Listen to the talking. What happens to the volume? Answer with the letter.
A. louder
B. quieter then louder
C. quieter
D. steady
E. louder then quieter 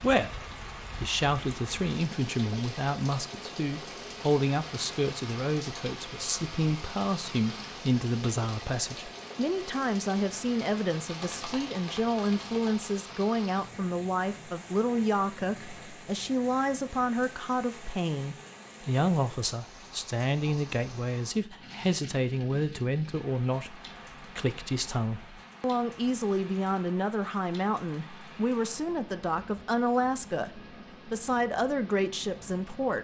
D.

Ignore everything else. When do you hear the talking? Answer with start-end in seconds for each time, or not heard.
0.0-32.9.